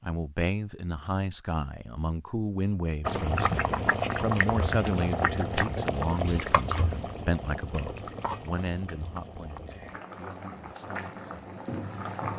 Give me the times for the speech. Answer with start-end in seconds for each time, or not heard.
0.0-11.5.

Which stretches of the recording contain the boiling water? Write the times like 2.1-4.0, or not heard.
3.0-12.3.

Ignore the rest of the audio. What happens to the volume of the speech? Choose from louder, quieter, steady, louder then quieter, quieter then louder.
quieter.